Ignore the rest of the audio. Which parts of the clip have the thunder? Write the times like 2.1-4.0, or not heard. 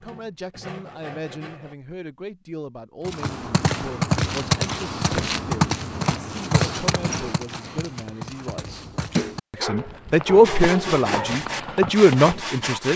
not heard.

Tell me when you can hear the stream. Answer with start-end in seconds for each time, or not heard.
not heard.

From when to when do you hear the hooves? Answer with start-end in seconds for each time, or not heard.
3.0-12.4.